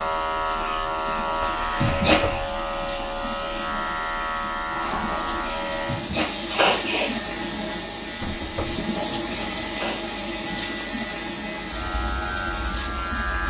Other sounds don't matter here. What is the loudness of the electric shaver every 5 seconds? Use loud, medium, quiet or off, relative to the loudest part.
loud, medium, medium.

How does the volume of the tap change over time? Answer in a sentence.
The loudness of the tap goes up.